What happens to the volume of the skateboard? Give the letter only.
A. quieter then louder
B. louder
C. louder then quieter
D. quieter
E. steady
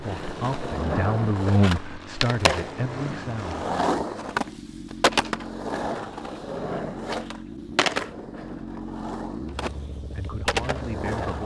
E.